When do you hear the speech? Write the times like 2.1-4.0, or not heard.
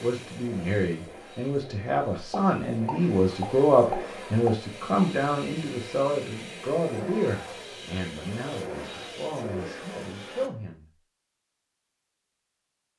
0.0-10.8.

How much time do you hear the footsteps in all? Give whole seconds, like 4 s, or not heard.
not heard.